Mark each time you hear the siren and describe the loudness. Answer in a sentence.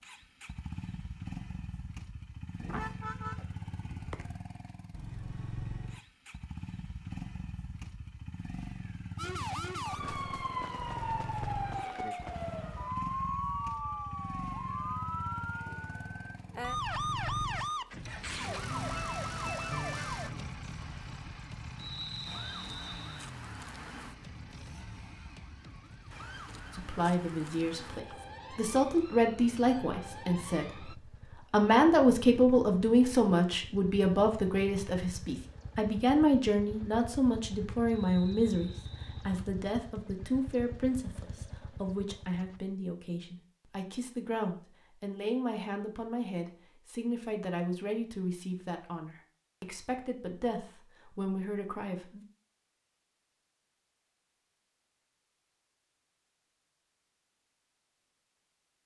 You can hear the siren from 9.2 to 30.9 s, getting quieter.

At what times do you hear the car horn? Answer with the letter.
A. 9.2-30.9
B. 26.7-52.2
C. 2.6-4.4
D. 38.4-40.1
C.